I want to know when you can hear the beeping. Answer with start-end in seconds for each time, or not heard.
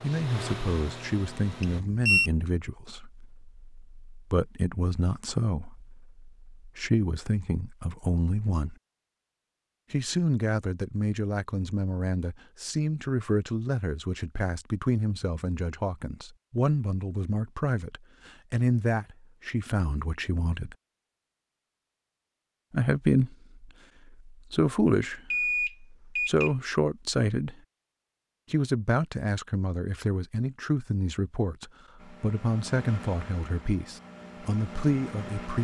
1.6-2.3, 25.3-26.5.